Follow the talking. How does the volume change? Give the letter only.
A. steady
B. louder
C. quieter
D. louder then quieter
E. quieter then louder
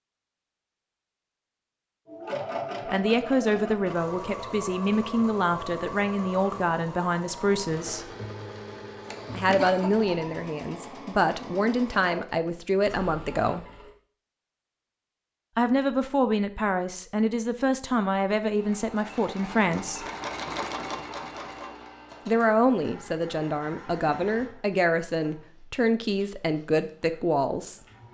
A.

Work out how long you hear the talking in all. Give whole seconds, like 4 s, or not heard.
20 s.